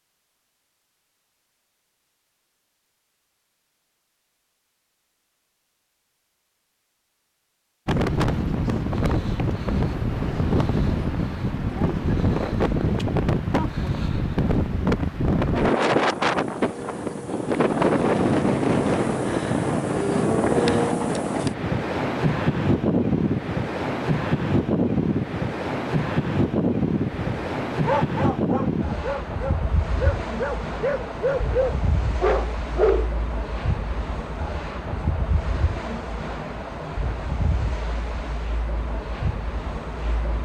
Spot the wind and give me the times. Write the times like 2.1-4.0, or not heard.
7.8-40.3.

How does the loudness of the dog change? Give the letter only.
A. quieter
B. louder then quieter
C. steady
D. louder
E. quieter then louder
D.